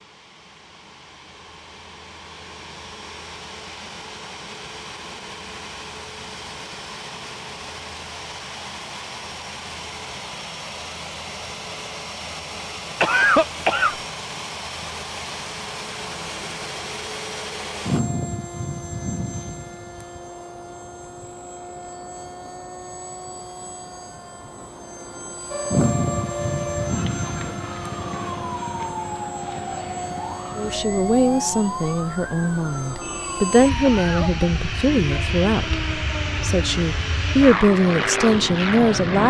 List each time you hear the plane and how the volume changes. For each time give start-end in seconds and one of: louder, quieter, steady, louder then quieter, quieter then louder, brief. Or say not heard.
0.0-39.2 louder.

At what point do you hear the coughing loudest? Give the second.
13 s.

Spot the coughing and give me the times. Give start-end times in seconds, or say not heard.
13.0-13.9, 33.8-34.3.